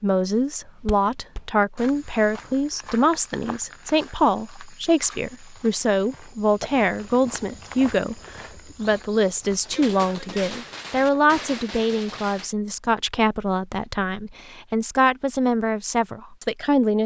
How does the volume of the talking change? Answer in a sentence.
The volume of the talking stays about the same.